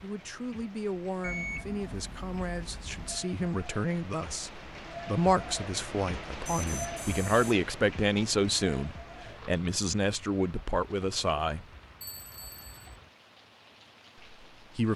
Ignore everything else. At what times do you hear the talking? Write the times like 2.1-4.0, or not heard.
0.0-11.7, 14.2-14.9.